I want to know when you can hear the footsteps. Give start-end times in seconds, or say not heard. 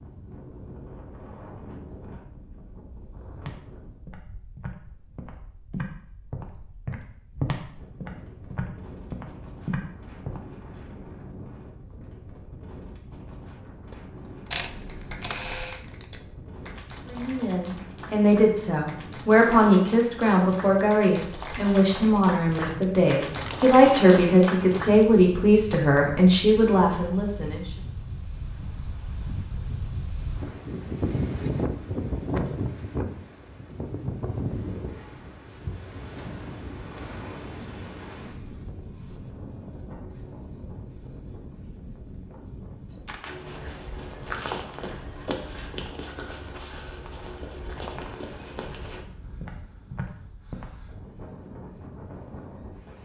3.4-10.4, 43.2-50.6.